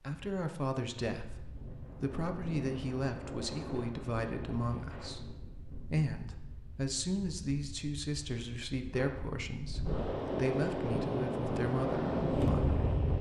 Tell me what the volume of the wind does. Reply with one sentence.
The loudness of the wind goes down, then up.